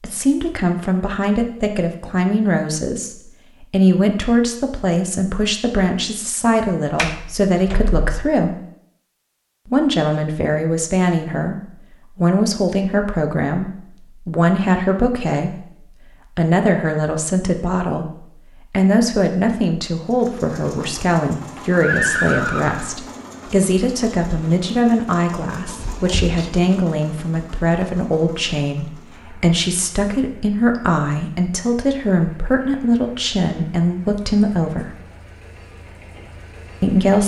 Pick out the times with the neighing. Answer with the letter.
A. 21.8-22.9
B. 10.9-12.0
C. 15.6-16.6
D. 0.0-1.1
A.